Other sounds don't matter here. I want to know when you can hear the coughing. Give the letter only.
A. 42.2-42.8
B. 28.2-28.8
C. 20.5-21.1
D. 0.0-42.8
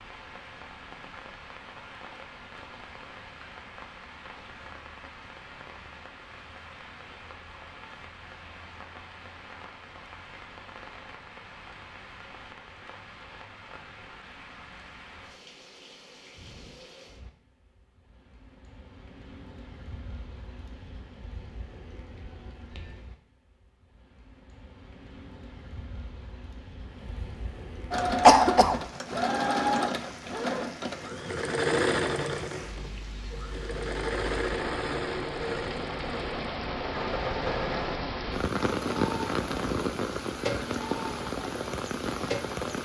B.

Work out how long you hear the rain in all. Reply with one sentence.
You can hear the rain for 43 seconds altogether.